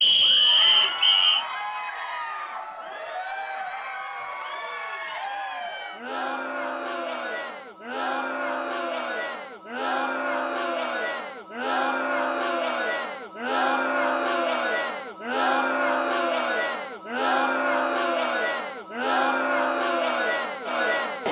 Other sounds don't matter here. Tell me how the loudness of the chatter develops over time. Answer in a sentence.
The loudness of the chatter goes up.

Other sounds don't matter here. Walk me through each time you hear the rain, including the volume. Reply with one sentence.
You can't hear the rain here.